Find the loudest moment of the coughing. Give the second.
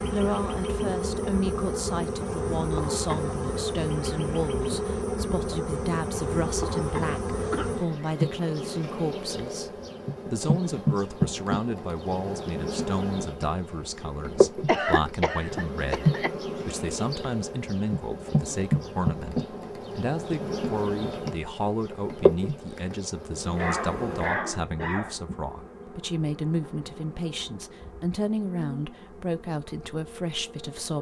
15 s.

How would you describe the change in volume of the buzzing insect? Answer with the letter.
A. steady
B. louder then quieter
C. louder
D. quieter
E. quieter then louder
D.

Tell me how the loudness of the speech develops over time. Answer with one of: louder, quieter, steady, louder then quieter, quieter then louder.
steady.